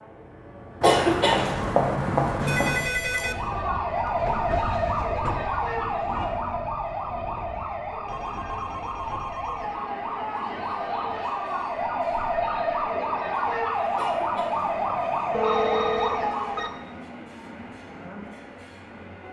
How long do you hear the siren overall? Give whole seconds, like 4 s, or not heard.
14 s.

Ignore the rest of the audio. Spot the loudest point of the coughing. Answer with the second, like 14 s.
1 s.